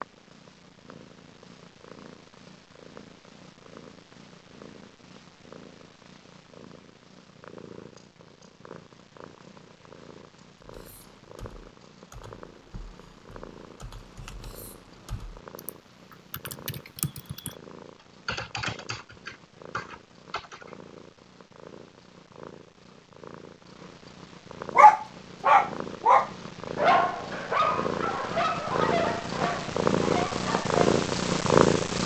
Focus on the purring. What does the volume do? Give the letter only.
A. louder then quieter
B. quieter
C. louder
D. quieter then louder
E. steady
C.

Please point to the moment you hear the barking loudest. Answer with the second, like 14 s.
25 s.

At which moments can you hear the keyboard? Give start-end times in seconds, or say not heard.
10.7-17.6, 18.2-20.9.